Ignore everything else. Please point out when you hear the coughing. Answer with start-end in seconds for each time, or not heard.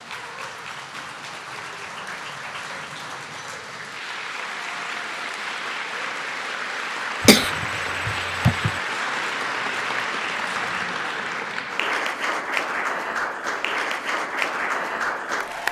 7.2-8.7.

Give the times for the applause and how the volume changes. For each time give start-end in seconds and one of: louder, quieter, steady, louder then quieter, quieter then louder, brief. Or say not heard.
0.0-15.6 louder.